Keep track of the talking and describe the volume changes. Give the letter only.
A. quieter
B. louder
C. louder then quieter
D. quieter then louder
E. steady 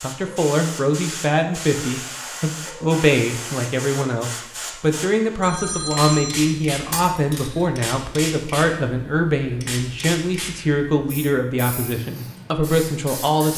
E.